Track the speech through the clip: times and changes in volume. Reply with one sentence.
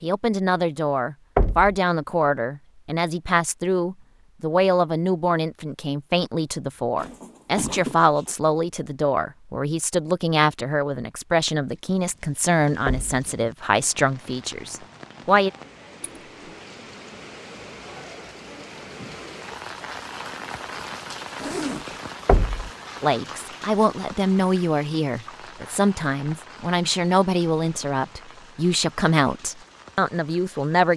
The speech can be heard from 0.0 to 15.5 s, at a steady volume; and from 23.0 to 30.9 s, at a steady volume.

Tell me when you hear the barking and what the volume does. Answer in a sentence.
You can't hear the barking here.